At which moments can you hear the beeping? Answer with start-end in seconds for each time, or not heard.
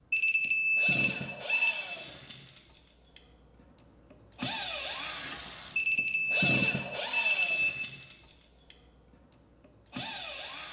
0.1-1.8, 5.8-7.7.